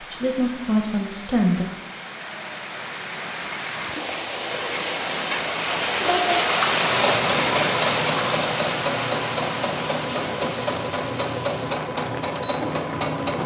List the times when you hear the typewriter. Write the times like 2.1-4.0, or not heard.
not heard.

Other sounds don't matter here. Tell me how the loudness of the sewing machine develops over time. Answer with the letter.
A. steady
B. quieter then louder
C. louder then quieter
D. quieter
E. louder
A.